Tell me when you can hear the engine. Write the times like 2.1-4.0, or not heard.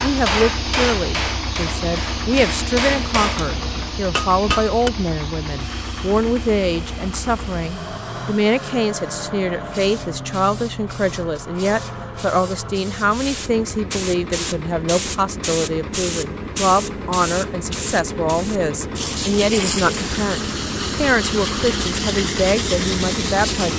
0.0-23.7.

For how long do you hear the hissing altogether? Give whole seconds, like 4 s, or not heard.
24 s.